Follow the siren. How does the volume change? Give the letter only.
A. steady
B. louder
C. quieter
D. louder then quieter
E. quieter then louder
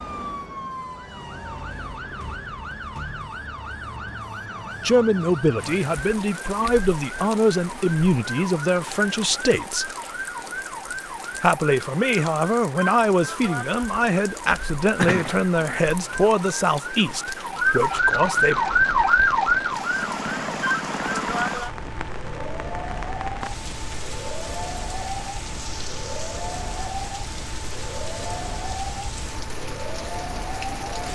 D.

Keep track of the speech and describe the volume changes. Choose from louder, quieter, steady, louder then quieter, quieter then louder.
steady.